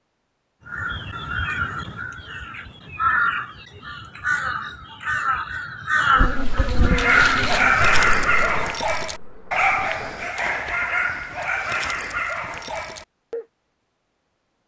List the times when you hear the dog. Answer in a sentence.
You can hear the dog from 6.8 to 13.4 s.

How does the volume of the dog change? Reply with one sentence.
The volume of the dog goes down.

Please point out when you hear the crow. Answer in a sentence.
The crow can be heard from 0.7 to 8.3 s.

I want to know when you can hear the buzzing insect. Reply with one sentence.
You can hear the buzzing insect from 6.2 to 10.3 s.